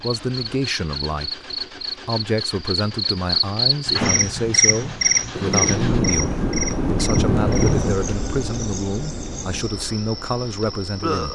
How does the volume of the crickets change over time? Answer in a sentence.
The volume of the crickets goes up, then down.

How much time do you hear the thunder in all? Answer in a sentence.
You can hear the thunder for 3 seconds altogether.